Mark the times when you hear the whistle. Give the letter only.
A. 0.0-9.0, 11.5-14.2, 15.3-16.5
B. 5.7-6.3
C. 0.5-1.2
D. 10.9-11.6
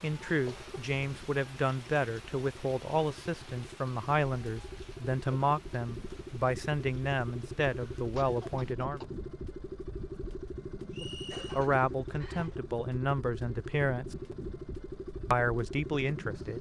D.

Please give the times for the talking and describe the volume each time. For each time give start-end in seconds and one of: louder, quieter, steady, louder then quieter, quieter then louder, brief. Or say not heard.
0.0-9.0 steady
11.5-14.2 brief
15.3-16.5 brief.